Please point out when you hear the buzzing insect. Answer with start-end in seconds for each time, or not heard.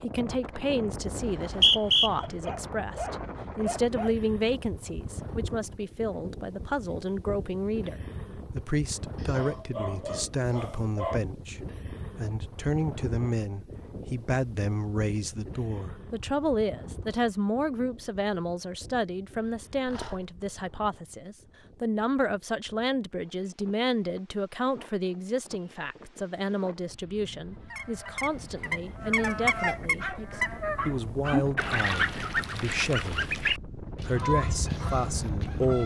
not heard.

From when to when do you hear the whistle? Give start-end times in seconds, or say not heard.
1.2-2.1.